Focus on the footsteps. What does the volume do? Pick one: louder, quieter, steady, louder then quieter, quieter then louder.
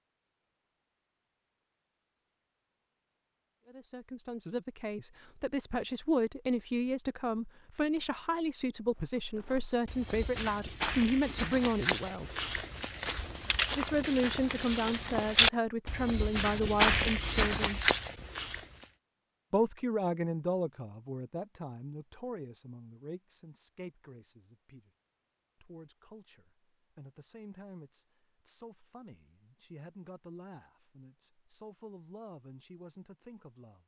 louder.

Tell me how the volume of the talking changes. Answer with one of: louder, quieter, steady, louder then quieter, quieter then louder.
quieter.